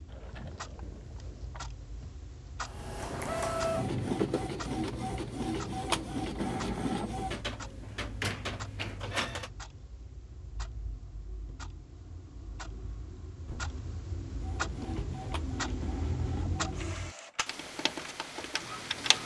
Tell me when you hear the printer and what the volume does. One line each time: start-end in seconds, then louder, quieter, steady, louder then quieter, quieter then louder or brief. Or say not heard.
2.6-9.5 quieter
14.3-19.2 steady.